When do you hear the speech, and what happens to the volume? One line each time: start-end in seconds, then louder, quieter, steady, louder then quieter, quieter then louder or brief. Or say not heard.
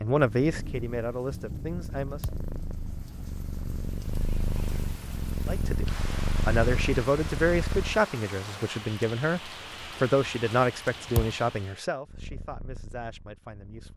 0.0-2.2 brief
5.5-13.9 quieter.